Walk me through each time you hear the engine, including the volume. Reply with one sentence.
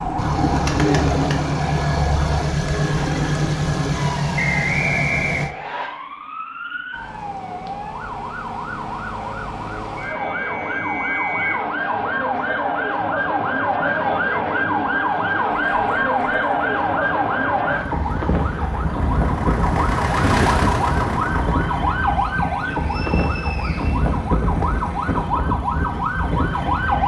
You can hear the engine from 0.0 to 5.5 s, at a steady volume; and from 15.5 to 27.0 s, getting louder then quieter.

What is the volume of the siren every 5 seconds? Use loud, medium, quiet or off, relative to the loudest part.
medium, medium, loud, loud, loud, loud.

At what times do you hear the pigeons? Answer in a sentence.
You can hear the pigeons from 0.0 to 4.0 s.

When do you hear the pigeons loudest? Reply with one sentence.
The loudest moment of the pigeons is at 1 second.